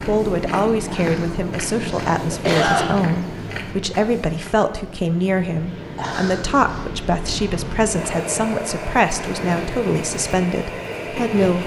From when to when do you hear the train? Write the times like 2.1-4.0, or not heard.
0.0-11.6.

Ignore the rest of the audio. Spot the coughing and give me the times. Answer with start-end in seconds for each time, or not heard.
0.8-2.9, 6.0-6.8.